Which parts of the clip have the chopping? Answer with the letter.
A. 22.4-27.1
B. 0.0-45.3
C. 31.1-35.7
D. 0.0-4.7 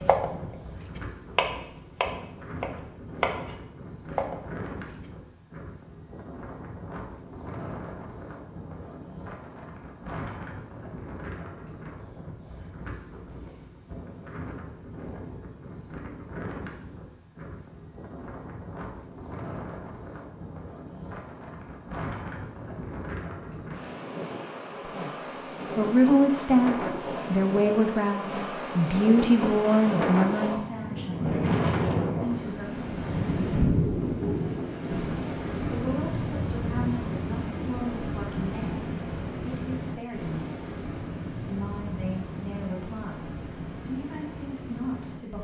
D.